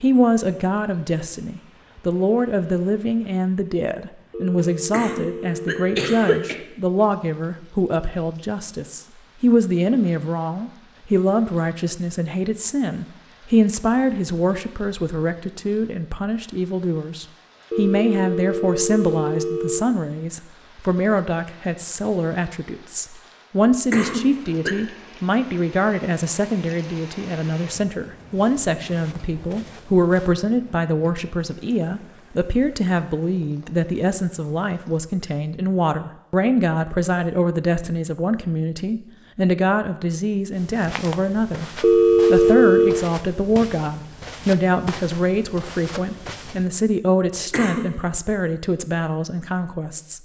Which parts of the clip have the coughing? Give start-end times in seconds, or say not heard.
4.9-6.5, 23.9-24.8, 47.5-48.0.